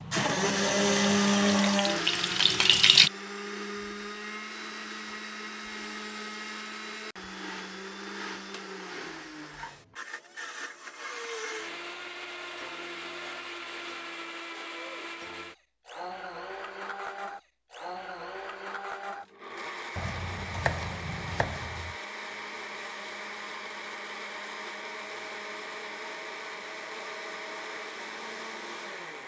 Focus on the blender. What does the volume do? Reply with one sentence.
The volume of the blender goes down.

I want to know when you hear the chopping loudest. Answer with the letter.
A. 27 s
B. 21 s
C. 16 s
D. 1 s
B.